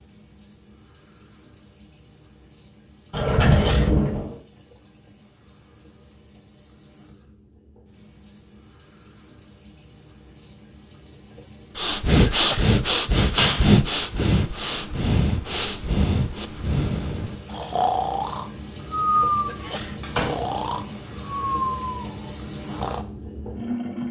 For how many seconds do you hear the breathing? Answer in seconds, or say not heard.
11 s.